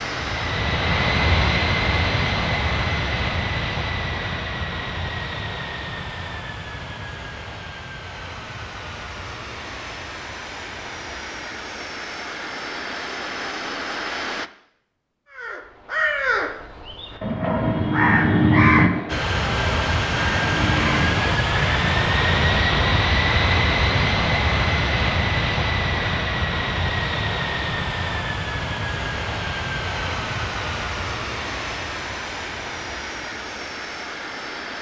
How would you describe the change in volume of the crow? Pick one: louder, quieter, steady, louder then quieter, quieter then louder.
louder then quieter.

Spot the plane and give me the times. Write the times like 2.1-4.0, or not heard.
0.0-14.5, 19.1-34.7.